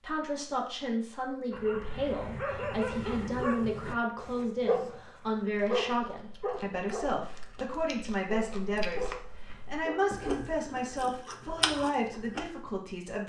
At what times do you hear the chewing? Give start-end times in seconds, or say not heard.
5.5-12.6.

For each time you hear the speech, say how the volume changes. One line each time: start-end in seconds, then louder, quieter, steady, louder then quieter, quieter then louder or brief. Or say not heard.
0.0-13.2 steady.